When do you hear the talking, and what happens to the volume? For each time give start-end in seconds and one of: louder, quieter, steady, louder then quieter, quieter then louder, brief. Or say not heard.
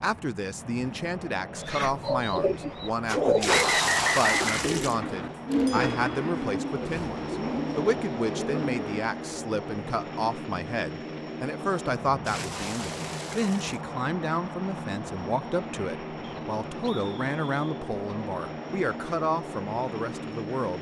0.0-20.7 steady.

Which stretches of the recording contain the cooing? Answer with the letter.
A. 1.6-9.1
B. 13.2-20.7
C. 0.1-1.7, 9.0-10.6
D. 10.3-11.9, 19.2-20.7
A.